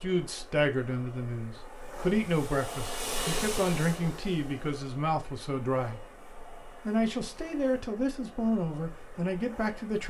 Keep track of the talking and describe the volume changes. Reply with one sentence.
The loudness of the talking stays about the same.